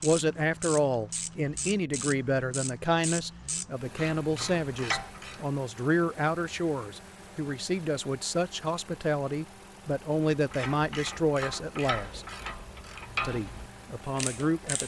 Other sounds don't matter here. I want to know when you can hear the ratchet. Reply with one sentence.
You can hear the ratchet from 0.0 to 5.5 s and from 10.3 to 14.8 s.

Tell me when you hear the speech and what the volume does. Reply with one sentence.
You can hear the speech from 0.0 to 12.2 s, at a steady volume; and briefly from 13.2 to 14.8 s.